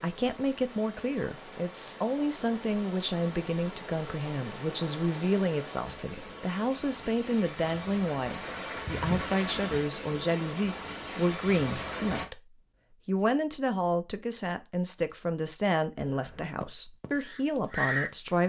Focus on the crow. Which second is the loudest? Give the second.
18 s.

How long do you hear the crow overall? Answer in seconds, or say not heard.
2 s.